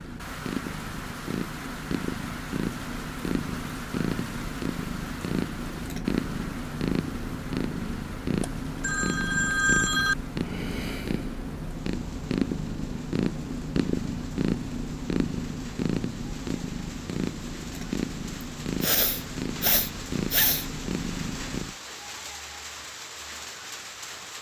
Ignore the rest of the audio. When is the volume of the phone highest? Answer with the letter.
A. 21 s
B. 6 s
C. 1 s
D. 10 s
D.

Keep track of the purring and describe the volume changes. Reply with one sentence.
The loudness of the purring stays about the same.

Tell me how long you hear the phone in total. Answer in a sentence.
The phone can be heard for 2 seconds in total.